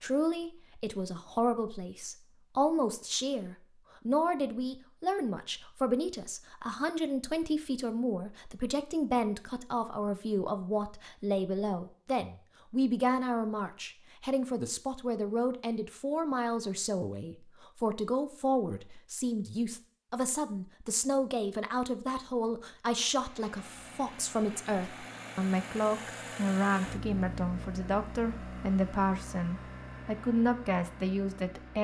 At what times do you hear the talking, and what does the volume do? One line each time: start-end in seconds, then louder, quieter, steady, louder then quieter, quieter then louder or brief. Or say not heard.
0.0-31.7 steady.